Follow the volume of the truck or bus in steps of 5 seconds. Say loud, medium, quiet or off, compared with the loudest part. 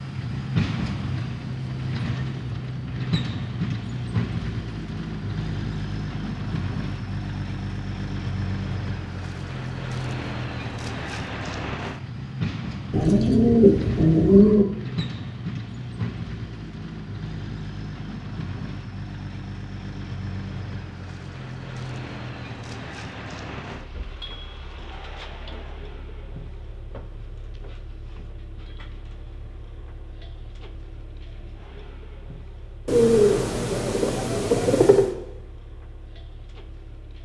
loud, loud, loud, medium, medium, quiet, quiet, quiet.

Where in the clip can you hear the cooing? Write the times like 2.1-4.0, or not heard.
12.9-14.7, 32.9-35.1.